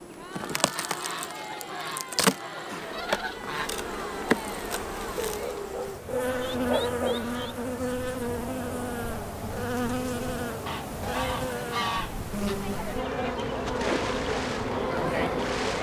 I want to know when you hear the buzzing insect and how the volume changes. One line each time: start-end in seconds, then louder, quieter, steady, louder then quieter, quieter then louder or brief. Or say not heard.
0.0-15.7 steady.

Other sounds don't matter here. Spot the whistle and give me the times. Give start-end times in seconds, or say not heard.
not heard.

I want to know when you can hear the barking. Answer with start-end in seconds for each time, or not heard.
5.2-7.2.